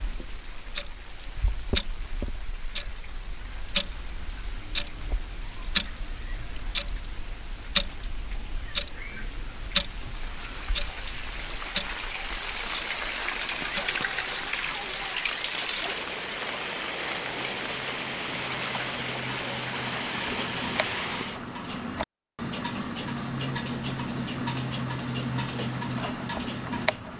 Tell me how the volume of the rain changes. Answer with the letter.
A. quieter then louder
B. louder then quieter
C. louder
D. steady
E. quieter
C.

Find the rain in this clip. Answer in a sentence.
You can hear the rain from 0.0 to 21.4 s.